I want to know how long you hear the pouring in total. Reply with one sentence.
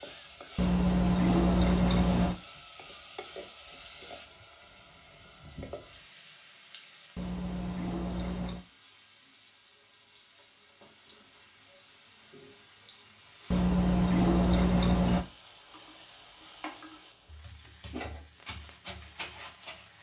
You can hear the pouring for 5 seconds altogether.